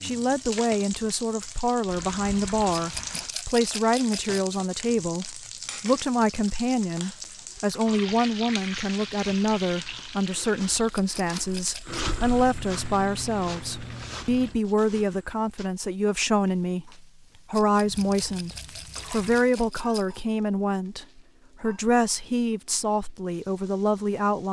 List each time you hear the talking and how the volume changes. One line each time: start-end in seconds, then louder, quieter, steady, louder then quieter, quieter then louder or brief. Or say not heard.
0.0-24.4 steady.